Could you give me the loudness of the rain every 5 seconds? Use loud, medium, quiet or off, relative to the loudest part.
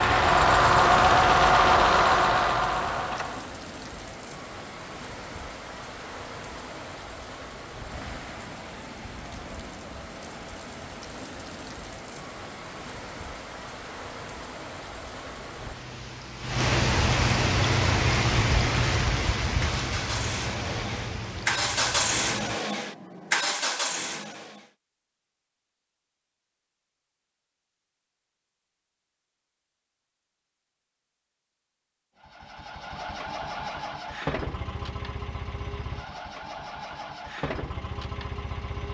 quiet, quiet, quiet, loud, medium, off, off, off.